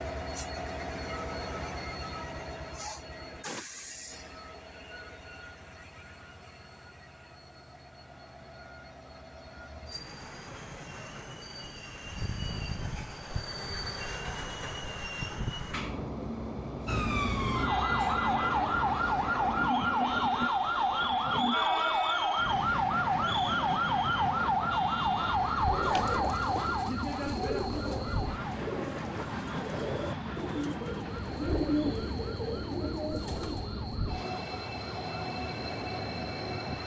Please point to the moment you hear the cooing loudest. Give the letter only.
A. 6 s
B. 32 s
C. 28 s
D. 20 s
B.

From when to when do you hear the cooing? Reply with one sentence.
The cooing can be heard from 25.6 to 33.7 s.